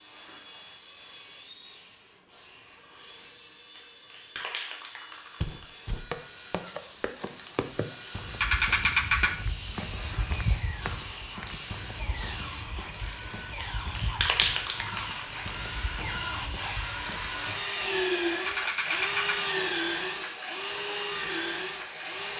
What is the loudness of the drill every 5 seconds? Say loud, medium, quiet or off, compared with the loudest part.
quiet, quiet, medium, loud, loud.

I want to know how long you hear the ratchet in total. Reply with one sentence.
The ratchet can be heard for 2 seconds in total.